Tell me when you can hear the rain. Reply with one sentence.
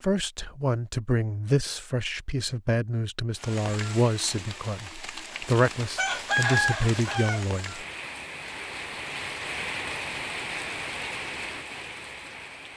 The rain can be heard from 3.3 to 12.7 s.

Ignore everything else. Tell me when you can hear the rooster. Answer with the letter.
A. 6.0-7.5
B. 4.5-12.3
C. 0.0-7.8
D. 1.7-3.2
A.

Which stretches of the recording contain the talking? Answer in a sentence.
The talking can be heard from 0.0 to 7.8 s.